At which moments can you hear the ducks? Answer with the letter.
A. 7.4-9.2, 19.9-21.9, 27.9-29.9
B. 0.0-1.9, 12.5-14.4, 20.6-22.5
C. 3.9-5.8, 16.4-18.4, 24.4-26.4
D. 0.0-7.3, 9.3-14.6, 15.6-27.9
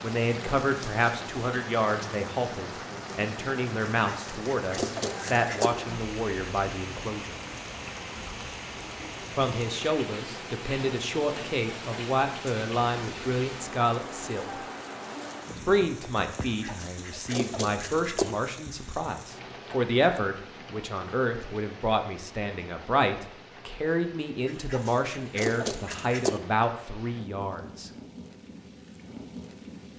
C.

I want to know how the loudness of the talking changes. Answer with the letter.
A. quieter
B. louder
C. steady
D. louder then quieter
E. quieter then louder
C.